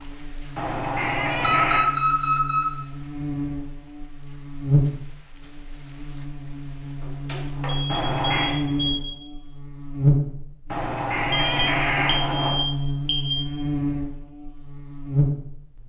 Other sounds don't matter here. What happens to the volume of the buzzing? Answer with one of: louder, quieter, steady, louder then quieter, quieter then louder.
louder.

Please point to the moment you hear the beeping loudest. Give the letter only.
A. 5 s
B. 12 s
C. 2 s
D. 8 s
C.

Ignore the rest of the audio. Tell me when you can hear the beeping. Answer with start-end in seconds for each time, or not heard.
1.4-2.8, 7.0-9.0, 11.3-13.3.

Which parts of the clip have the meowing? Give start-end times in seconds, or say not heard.
0.6-1.9, 7.8-8.6, 10.7-12.7.